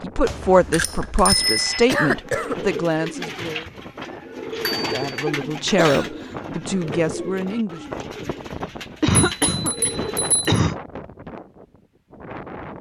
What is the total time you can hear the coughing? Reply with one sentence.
The coughing can be heard for 3 seconds in total.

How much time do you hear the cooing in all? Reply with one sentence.
You can hear the cooing for 9 seconds altogether.